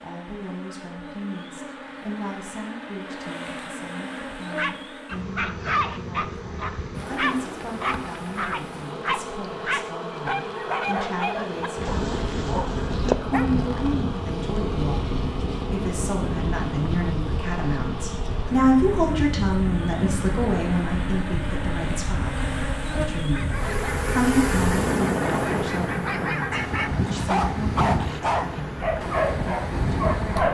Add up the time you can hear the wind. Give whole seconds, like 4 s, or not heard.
19 s.